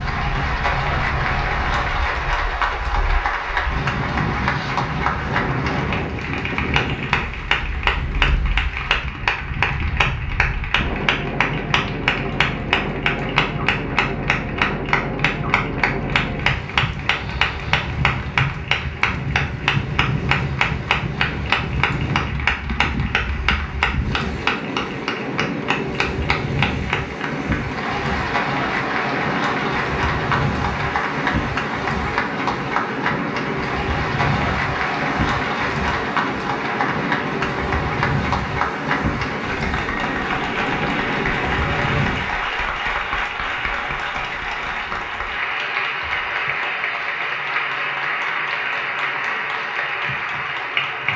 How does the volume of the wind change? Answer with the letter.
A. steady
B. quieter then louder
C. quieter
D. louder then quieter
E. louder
A.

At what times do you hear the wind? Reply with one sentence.
You can hear the wind from 0.0 to 42.4 s.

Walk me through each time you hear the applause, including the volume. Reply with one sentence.
The applause can be heard from 0.0 to 51.1 s, at a steady volume.